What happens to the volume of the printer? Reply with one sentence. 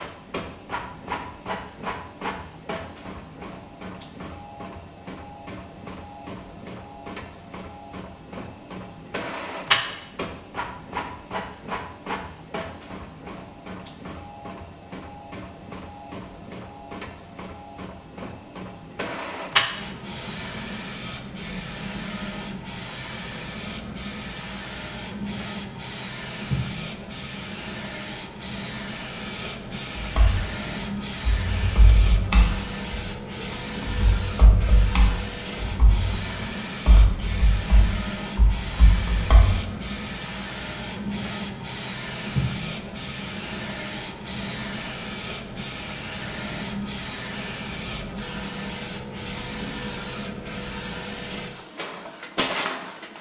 The volume of the printer stays about the same.